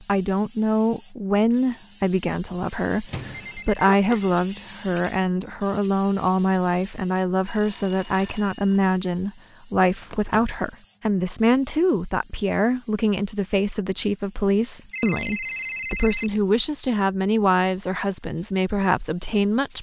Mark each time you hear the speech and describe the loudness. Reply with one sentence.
The speech can be heard from 0.0 to 19.7 s, at a steady volume.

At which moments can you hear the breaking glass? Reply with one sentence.
The breaking glass can't be heard in this clip.